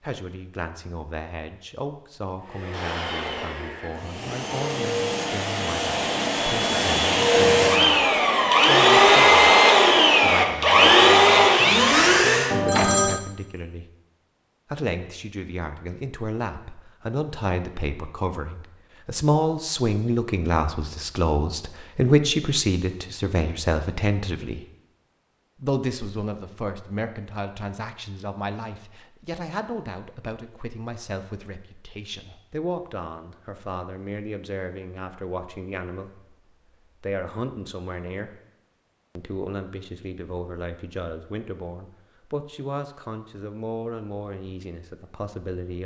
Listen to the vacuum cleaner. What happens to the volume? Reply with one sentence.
The volume of the vacuum cleaner goes up.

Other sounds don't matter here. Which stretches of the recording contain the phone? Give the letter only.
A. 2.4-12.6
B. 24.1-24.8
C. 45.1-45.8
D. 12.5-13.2
D.